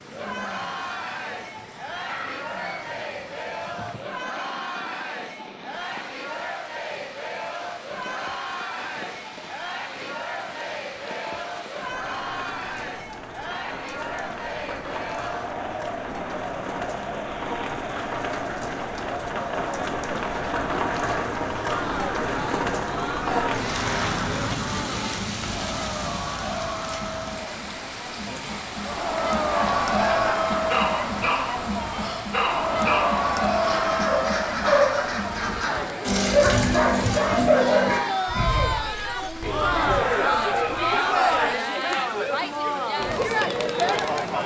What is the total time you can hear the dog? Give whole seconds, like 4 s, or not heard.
12 s.